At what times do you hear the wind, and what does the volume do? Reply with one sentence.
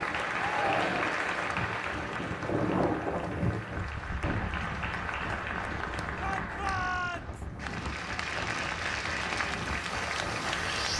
The wind can be heard from 0.0 to 10.9 s, getting louder then quieter.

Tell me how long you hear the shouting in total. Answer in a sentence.
The shouting can be heard for 2 seconds in total.